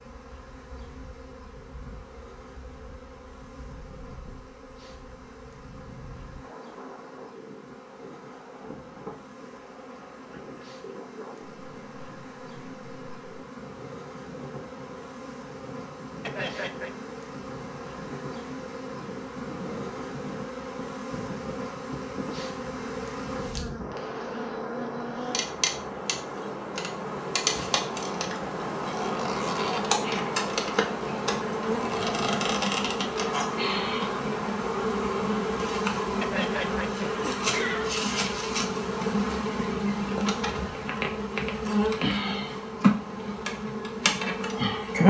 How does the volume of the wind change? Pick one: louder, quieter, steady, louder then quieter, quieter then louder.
louder then quieter.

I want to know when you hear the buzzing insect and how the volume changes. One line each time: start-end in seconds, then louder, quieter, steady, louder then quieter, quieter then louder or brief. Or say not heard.
0.0-45.0 louder.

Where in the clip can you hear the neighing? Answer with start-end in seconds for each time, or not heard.
16.2-16.9, 36.2-37.9.